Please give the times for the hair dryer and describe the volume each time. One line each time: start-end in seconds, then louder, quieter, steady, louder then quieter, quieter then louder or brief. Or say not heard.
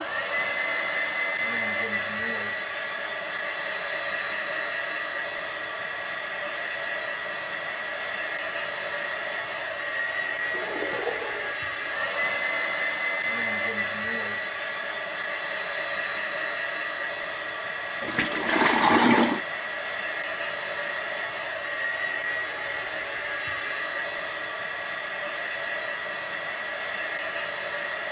0.0-28.0 steady.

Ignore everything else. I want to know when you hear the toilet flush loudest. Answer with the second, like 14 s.
19 s.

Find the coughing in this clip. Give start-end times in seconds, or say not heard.
not heard.